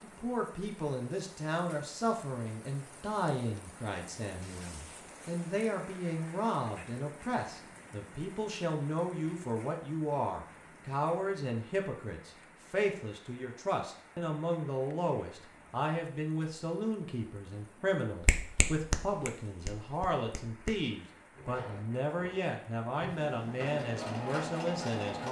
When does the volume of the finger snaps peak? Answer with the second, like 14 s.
19 s.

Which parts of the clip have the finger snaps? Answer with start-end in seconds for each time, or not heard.
18.2-20.8.